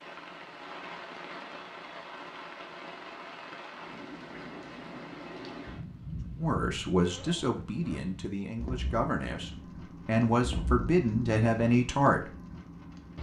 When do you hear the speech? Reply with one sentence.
You can hear the speech from 6.3 to 12.3 s.